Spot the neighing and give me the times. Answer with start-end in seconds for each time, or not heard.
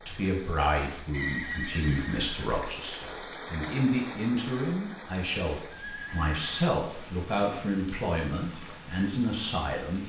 1.1-2.5, 5.7-6.7.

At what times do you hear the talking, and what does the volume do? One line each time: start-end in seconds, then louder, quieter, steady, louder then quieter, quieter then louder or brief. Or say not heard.
0.1-10.0 steady.